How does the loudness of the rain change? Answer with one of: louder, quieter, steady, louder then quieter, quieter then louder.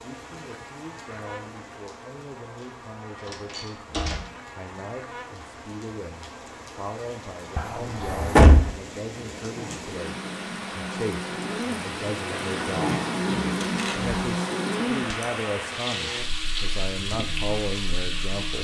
louder.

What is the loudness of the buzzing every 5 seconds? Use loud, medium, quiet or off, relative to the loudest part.
quiet, quiet, loud, medium.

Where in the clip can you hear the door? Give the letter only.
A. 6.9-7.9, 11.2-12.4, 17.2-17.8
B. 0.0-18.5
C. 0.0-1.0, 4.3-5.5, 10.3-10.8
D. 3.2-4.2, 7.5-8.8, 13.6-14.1
D.